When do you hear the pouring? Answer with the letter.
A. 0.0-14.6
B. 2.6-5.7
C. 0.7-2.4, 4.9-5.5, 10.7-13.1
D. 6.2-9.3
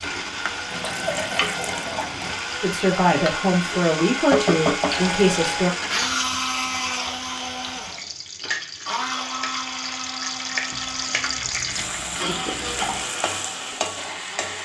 C.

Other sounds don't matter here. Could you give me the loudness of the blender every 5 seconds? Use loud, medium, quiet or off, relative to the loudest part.
loud, loud, medium.